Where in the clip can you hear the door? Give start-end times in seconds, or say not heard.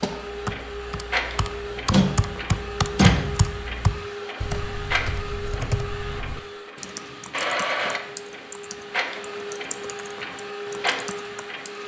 1.9-3.4.